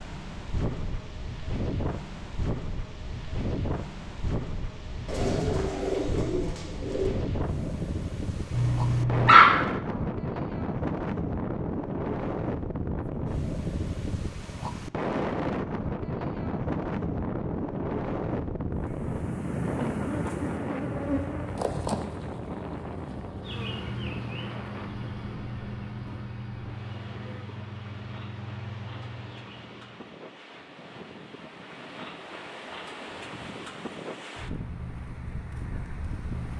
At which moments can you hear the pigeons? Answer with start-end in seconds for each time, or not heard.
5.0-7.1.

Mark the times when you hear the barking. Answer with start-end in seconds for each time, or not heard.
8.5-10.1.